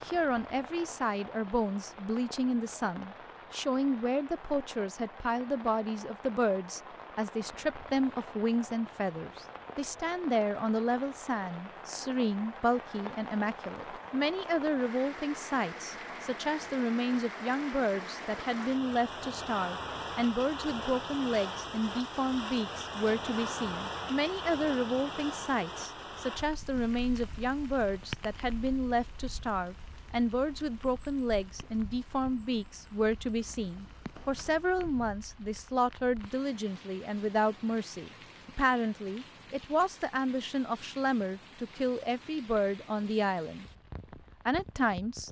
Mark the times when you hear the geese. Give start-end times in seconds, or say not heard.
not heard.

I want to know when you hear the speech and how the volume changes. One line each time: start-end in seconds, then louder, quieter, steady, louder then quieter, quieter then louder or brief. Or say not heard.
0.1-43.6 steady
44.5-45.2 brief.